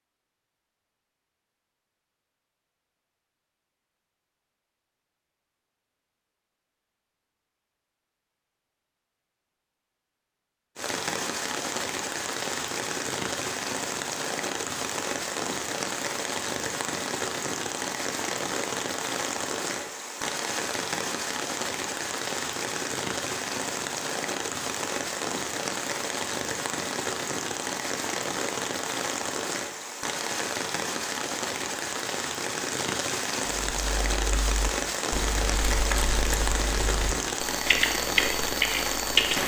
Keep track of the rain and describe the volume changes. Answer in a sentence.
The volume of the rain stays about the same.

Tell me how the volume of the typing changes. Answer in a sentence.
The loudness of the typing goes up.